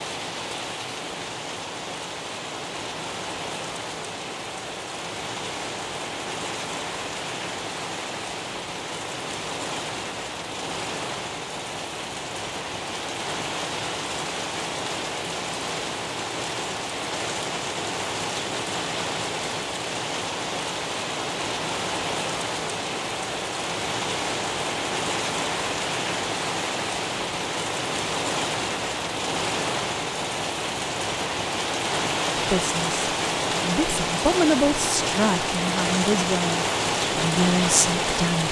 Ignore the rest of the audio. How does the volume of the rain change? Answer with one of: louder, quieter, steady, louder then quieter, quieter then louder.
louder.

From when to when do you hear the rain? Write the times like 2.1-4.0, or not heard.
0.0-38.4.